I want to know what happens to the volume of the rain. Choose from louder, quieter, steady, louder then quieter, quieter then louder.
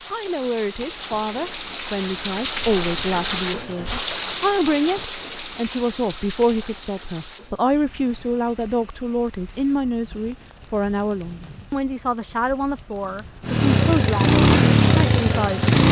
quieter.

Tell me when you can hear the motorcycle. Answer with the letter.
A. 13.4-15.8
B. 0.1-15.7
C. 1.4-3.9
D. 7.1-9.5
A.